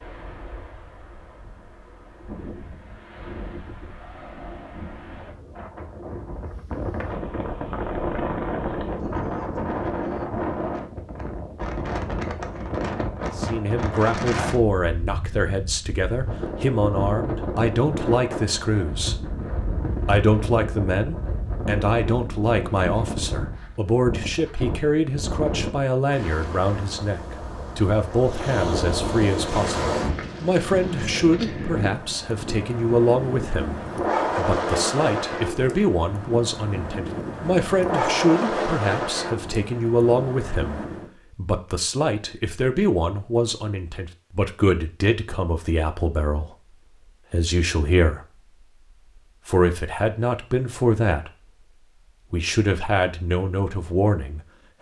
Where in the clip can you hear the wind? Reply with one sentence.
The wind can be heard from 0.0 to 41.1 s.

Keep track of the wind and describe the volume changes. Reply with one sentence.
The loudness of the wind goes up.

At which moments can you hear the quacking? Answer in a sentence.
You can't hear the quacking here.